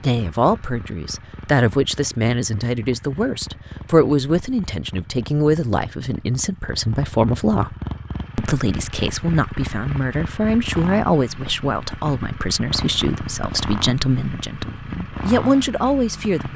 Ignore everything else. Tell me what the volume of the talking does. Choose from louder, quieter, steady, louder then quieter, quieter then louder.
steady.